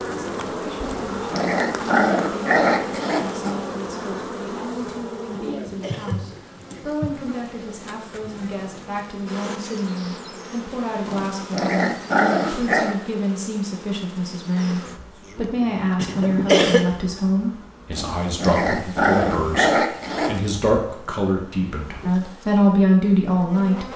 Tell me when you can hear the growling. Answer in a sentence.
The growling can be heard from 0.8 to 3.5 s, from 11.1 to 12.9 s and from 17.9 to 20.6 s.